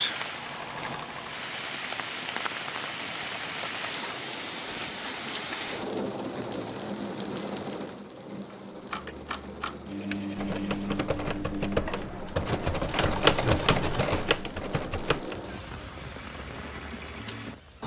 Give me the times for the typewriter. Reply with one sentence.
The typewriter can be heard from 8.5 to 15.3 s.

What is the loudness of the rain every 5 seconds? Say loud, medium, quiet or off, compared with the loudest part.
loud, loud, medium, medium.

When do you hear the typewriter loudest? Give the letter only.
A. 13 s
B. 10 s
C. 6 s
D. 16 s
A.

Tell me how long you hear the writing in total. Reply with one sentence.
The writing can't be heard in this clip.